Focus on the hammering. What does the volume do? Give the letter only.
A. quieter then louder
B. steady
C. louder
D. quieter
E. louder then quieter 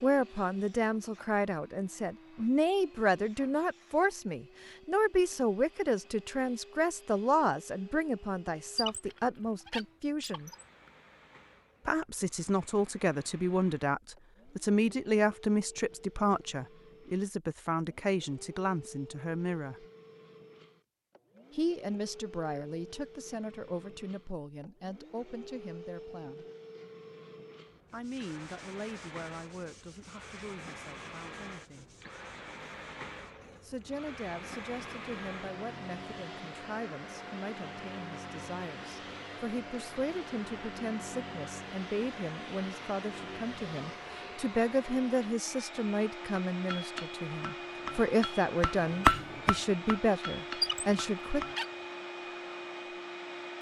E.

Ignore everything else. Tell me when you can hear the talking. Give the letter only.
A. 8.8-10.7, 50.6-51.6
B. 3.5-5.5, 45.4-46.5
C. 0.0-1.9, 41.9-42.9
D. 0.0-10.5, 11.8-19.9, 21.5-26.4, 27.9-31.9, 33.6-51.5
D.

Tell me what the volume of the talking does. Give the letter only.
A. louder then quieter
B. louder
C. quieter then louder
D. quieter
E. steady
C.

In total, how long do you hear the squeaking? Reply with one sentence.
You can hear the squeaking for 3 seconds altogether.